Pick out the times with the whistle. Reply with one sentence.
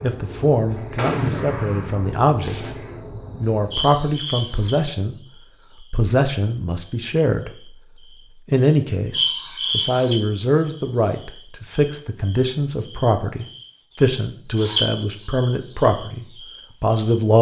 The whistle can't be heard in this clip.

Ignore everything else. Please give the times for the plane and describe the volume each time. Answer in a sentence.
You can't hear the plane here.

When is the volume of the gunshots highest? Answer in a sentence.
The loudest moment of the gunshots is at 1 second.